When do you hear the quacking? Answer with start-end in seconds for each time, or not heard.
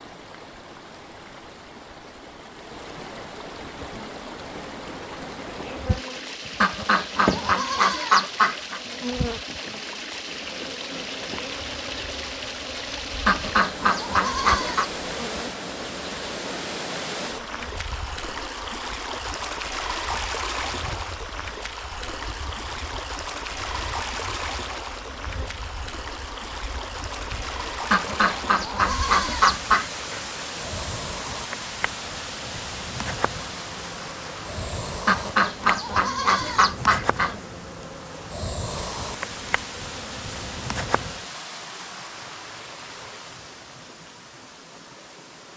6.6-8.8, 13.2-14.9, 27.9-29.9, 35.0-37.4.